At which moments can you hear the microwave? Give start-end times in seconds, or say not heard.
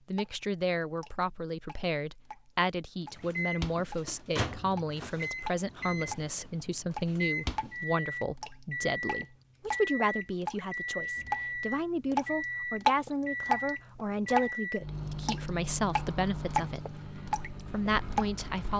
3.0-18.7.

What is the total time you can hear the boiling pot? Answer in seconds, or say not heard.
not heard.